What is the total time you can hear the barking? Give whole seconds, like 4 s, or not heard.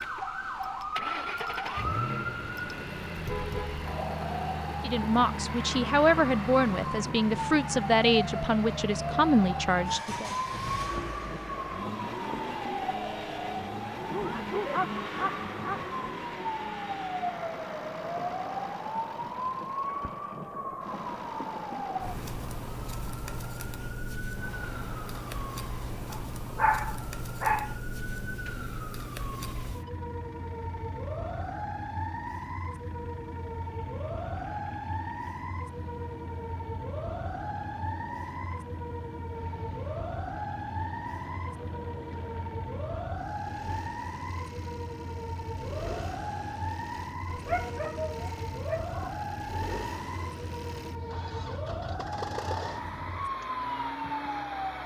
5 s.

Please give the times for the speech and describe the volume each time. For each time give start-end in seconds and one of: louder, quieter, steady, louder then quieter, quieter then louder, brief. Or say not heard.
4.8-10.3 steady.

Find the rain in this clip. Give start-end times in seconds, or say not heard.
not heard.